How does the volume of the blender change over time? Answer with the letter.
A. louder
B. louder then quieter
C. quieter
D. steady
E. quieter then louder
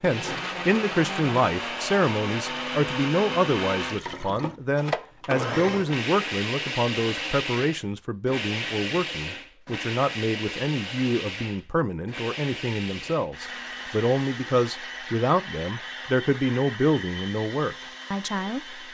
C.